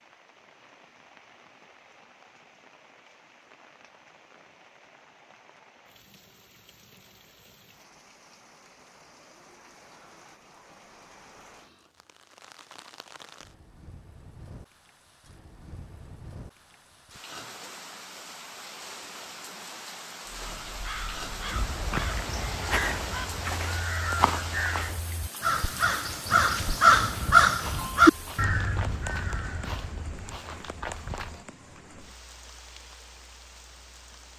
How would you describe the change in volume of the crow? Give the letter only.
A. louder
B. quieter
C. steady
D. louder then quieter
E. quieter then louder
D.